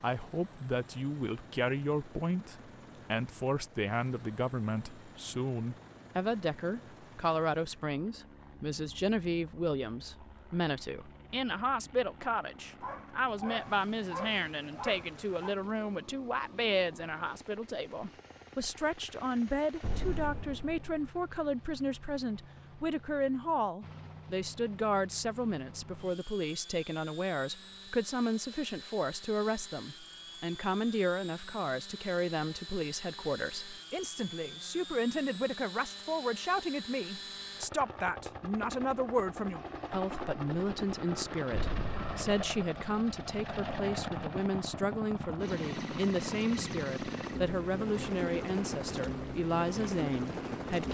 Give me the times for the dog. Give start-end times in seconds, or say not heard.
12.8-15.6.